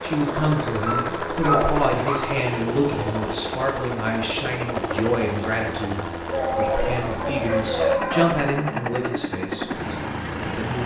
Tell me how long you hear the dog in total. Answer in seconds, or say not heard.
4 s.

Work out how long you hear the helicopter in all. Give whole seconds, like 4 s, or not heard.
11 s.